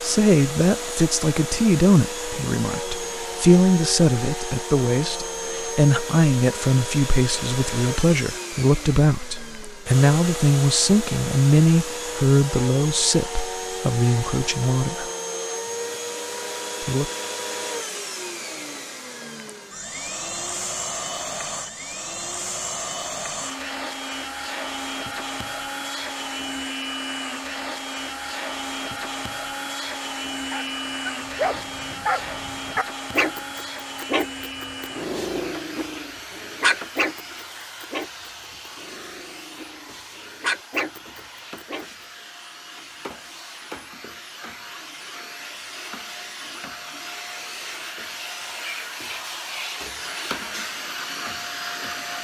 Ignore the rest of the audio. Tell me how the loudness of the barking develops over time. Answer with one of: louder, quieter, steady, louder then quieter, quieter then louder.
quieter then louder.